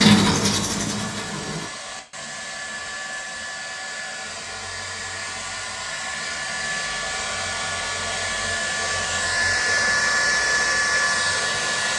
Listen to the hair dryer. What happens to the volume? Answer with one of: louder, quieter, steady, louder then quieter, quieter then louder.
louder.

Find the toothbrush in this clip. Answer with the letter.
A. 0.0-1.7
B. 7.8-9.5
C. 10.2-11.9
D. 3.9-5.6
A.